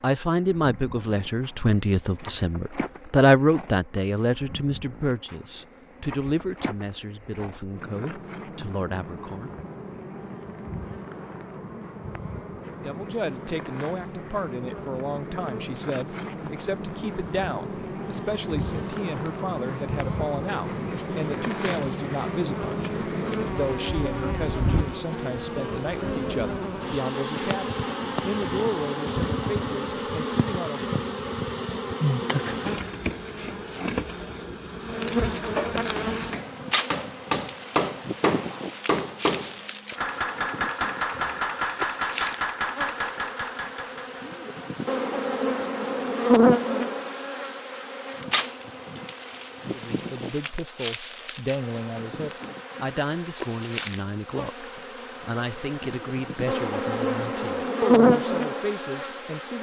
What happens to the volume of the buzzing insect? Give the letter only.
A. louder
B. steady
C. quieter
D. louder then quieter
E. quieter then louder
A.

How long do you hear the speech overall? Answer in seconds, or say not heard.
38 s.